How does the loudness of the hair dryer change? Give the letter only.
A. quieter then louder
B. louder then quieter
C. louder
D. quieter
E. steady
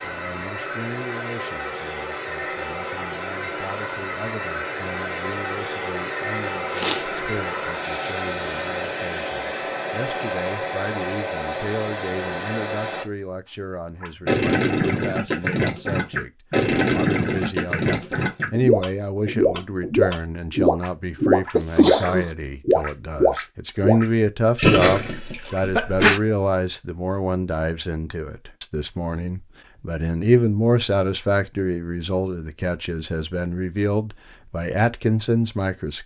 E.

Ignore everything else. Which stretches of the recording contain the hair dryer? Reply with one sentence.
You can hear the hair dryer from 0.0 to 13.5 s.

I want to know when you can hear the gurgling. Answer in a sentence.
The gurgling can be heard from 14.0 to 25.6 s.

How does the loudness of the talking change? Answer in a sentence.
The loudness of the talking goes up.